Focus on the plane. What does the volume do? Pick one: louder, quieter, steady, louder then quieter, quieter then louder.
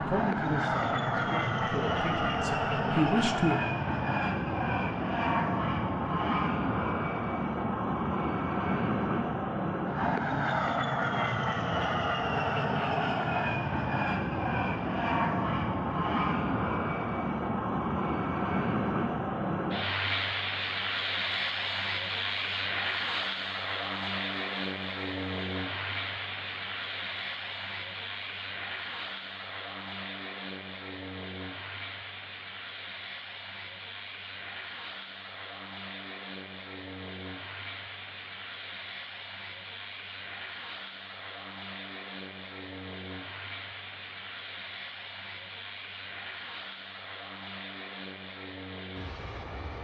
quieter.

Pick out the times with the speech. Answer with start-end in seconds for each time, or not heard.
0.0-3.6.